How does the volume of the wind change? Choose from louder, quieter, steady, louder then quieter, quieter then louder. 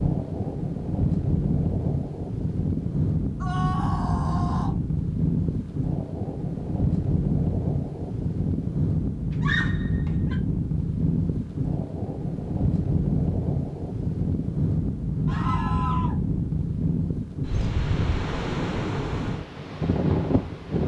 steady.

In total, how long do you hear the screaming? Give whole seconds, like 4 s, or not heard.
3 s.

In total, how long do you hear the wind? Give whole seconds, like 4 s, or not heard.
21 s.